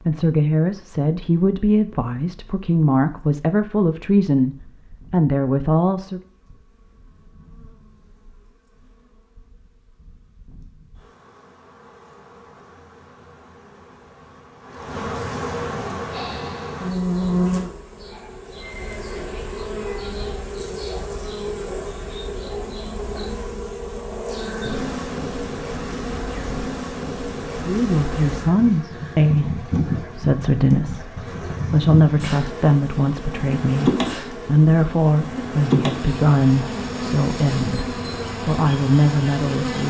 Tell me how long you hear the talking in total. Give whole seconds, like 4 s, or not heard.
18 s.